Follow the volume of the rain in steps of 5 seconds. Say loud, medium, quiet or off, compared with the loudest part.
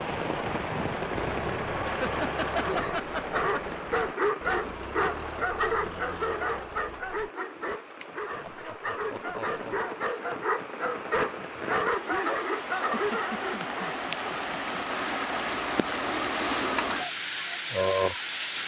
medium, quiet, medium, loud.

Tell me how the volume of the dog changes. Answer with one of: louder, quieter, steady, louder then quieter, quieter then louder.
quieter then louder.